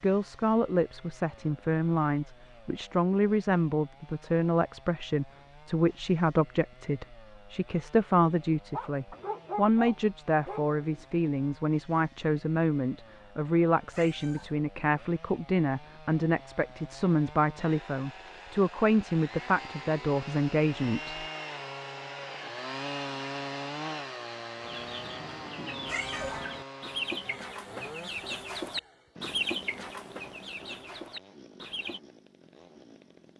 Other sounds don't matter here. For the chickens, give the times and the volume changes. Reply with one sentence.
You can hear the chickens from 24.6 to 32.0 s, getting louder then quieter.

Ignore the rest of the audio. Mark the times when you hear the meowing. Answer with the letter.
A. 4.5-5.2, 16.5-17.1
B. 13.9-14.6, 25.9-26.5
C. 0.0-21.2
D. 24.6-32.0
B.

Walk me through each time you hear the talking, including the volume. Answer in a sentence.
You can hear the talking from 0.0 to 21.2 s, at a steady volume.